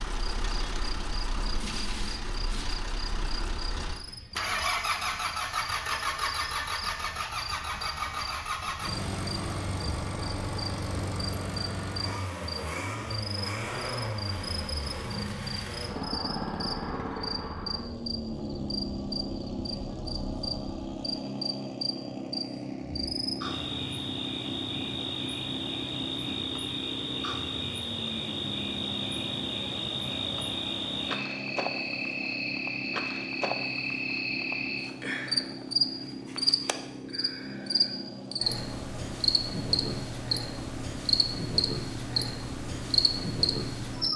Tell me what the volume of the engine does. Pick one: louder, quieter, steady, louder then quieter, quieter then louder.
quieter.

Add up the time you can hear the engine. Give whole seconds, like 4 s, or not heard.
44 s.